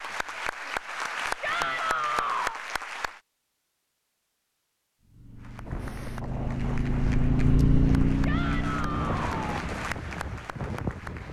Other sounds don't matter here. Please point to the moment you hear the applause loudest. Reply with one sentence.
The volume of the applause peaks at 1 second.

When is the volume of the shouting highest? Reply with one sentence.
The loudest moment of the shouting is at 2 seconds.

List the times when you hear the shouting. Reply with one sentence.
You can hear the shouting from 1.4 to 2.6 s and from 8.2 to 9.7 s.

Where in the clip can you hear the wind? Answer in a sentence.
The wind can be heard from 5.7 to 11.2 s.